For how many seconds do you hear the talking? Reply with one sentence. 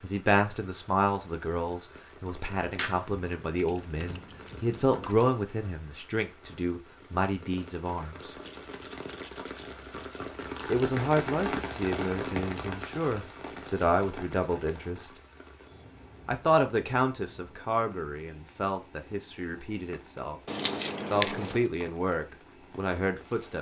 The talking can be heard for 19 seconds in total.